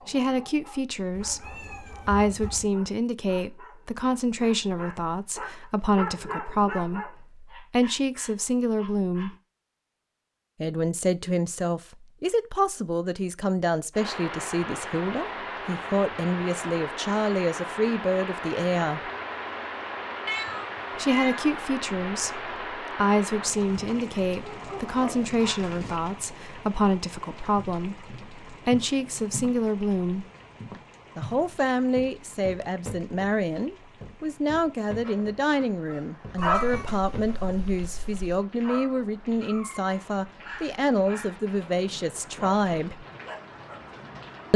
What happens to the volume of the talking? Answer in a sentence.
The volume of the talking stays about the same.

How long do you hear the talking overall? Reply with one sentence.
The talking can be heard for 39 seconds in total.